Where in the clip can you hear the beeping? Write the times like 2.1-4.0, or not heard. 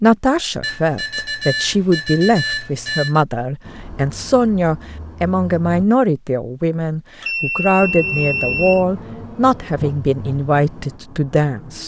0.6-3.2, 7.2-8.8.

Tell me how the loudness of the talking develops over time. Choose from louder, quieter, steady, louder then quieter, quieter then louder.
steady.